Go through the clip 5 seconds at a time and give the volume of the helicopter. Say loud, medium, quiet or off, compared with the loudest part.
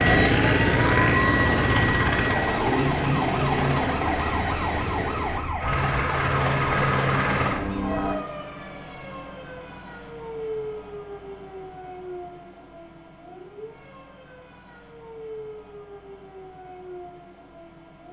loud, loud, off, off.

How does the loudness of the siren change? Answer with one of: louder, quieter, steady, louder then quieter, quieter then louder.
quieter.